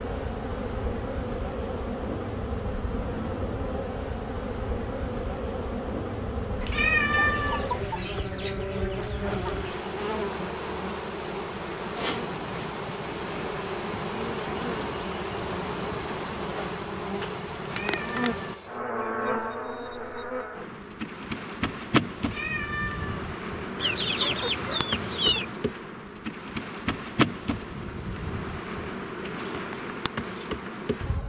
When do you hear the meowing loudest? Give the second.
7 s.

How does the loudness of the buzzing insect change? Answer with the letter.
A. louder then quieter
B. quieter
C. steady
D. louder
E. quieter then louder
C.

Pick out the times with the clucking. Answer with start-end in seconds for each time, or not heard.
7.1-9.7, 23.8-25.6.